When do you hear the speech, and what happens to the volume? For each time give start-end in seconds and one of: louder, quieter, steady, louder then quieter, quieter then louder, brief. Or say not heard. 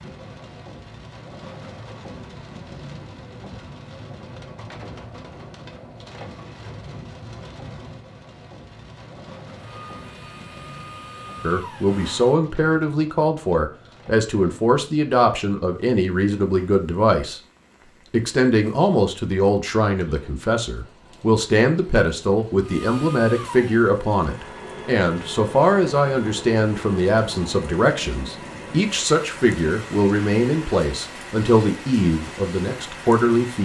11.4-17.4 steady
18.1-33.6 steady.